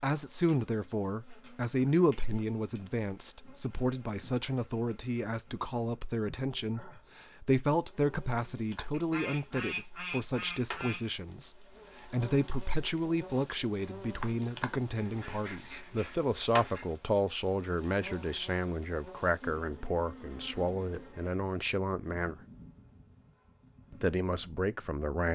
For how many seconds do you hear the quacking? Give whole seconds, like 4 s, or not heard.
4 s.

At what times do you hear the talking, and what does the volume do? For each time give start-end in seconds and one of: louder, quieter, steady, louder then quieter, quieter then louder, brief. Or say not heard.
0.0-22.4 steady
23.9-25.3 brief.